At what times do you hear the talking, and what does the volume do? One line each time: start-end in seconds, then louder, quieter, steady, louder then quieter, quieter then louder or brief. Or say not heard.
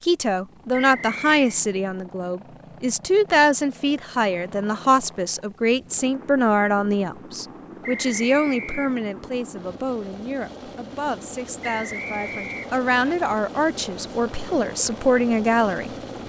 0.0-16.2 quieter then louder.